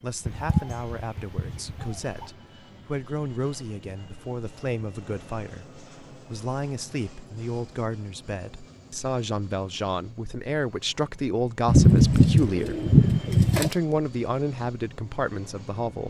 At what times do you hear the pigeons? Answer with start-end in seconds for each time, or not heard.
0.2-2.3, 11.7-13.8.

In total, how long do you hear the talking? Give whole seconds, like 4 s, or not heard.
16 s.